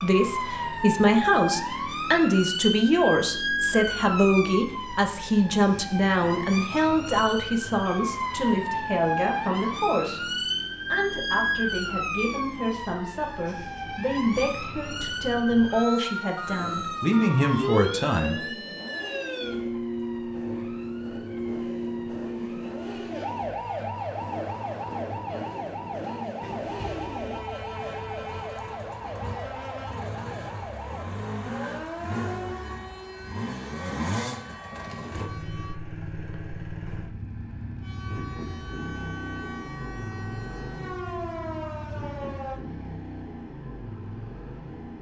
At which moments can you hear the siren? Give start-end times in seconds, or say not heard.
0.0-35.8, 37.8-42.6.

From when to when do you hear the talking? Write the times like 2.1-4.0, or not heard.
0.0-18.4.